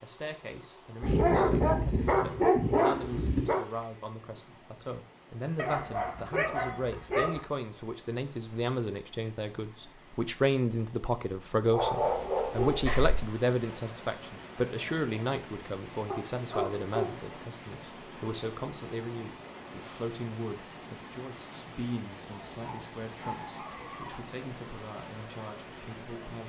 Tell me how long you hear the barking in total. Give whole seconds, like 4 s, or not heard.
9 s.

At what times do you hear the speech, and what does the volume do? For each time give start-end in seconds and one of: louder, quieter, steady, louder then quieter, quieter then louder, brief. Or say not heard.
0.0-26.4 louder then quieter.